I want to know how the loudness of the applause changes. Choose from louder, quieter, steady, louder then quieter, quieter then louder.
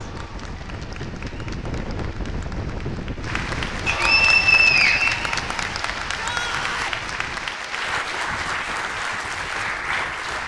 louder.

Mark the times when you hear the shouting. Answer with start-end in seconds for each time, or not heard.
6.2-7.0.